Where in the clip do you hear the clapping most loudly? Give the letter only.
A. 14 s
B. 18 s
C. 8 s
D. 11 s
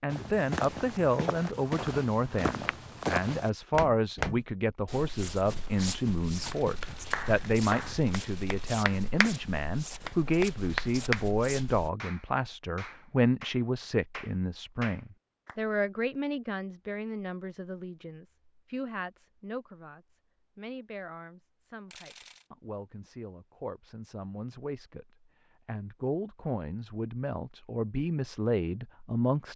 D.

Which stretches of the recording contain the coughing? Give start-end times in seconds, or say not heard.
not heard.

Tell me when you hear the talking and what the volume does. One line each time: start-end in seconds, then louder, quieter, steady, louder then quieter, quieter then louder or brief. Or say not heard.
0.0-29.5 quieter then louder.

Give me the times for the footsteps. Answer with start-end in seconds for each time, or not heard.
0.1-11.9.